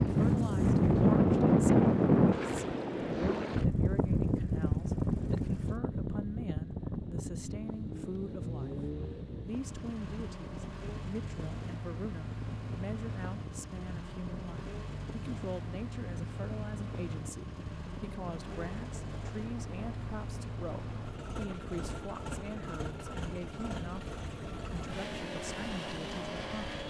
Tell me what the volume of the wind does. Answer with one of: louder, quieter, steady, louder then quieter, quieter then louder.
quieter.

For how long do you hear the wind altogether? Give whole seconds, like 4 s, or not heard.
27 s.